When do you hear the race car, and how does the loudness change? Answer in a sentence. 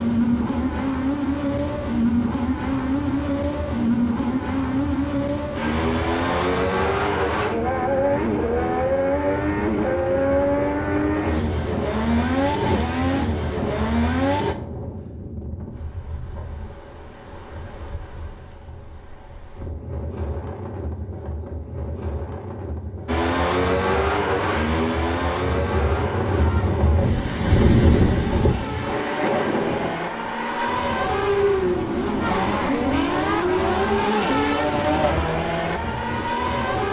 The race car can be heard from 0.0 to 14.6 s, at a steady volume; and from 23.1 to 36.8 s, getting quieter then louder.